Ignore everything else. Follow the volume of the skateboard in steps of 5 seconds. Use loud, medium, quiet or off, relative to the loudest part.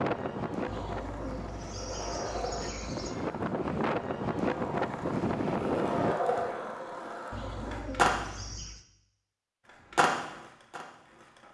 medium, loud, loud.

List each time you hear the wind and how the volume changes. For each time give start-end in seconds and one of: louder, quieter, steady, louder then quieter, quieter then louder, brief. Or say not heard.
0.0-6.2 quieter then louder.